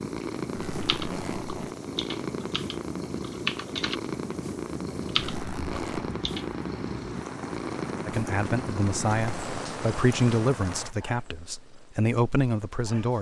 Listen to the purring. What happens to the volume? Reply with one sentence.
The volume of the purring goes down.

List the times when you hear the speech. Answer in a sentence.
You can hear the speech from 8.1 to 13.1 s.